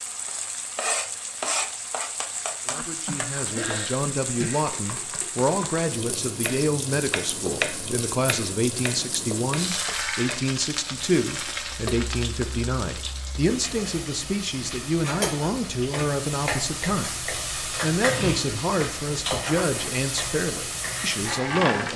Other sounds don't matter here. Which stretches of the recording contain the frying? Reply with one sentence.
The frying can be heard from 0.0 to 21.9 s.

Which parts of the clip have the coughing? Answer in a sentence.
The coughing can be heard from 2.7 to 4.7 s.